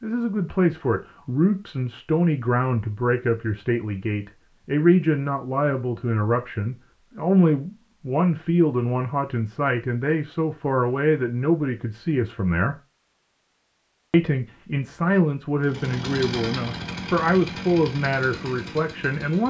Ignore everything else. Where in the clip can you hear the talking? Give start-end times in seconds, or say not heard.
0.0-12.8, 14.1-19.4.